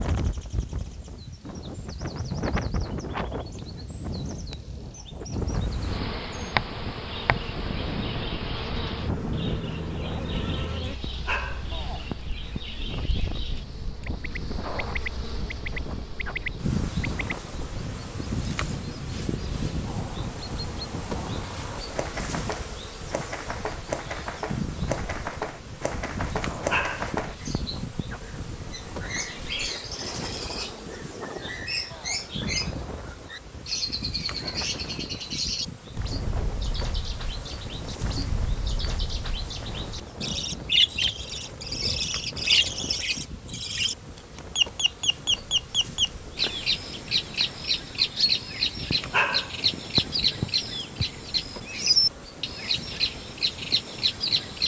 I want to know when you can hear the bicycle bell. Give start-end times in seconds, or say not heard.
not heard.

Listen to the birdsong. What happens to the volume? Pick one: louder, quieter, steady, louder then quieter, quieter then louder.
louder.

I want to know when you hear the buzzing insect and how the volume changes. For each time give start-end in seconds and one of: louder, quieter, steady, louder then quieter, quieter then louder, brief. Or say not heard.
5.3-54.6 quieter.